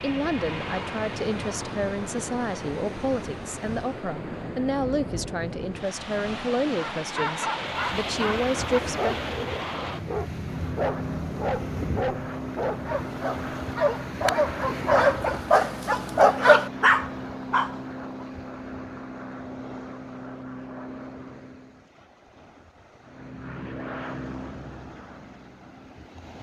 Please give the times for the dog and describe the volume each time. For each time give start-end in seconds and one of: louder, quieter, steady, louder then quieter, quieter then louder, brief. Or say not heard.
7.0-18.2 louder.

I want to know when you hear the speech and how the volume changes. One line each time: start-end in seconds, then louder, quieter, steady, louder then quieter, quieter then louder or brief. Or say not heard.
0.0-9.2 steady.